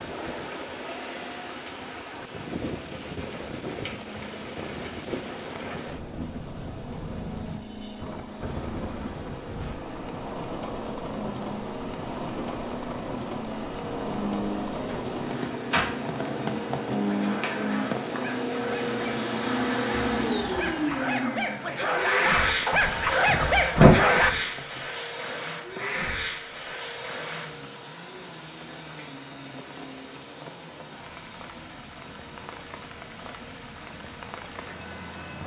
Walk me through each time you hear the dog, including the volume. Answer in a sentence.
The dog can be heard from 17.1 to 24.4 s, getting louder.